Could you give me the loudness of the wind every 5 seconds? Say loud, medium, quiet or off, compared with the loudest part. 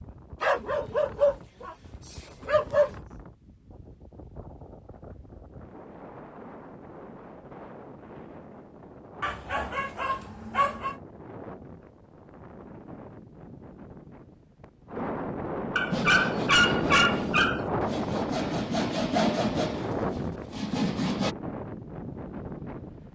quiet, quiet, quiet, loud, medium.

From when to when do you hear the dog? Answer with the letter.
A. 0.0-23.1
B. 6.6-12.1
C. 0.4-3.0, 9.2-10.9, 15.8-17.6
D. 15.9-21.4
C.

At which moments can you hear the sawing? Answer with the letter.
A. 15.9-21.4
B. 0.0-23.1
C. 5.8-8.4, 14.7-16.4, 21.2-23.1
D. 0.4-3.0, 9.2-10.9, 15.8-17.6
A.